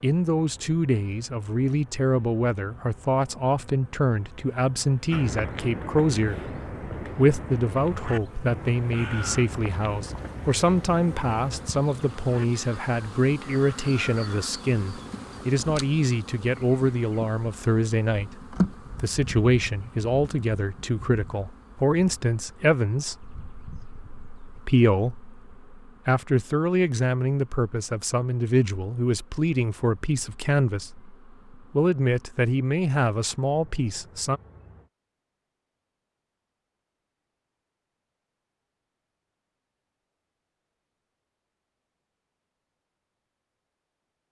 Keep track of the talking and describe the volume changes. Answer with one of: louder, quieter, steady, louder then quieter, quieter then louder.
steady.